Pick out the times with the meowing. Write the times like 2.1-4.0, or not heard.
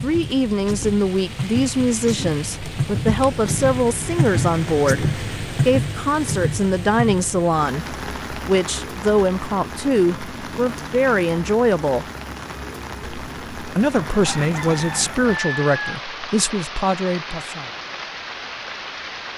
not heard.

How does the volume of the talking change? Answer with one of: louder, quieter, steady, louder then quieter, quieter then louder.
steady.